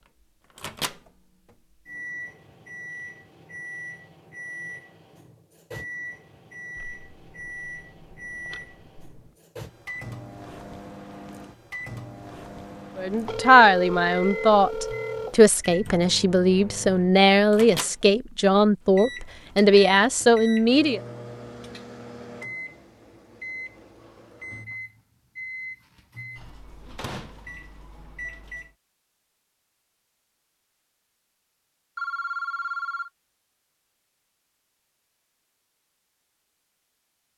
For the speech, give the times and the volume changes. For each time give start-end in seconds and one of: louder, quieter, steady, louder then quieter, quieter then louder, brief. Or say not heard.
12.9-21.0 steady.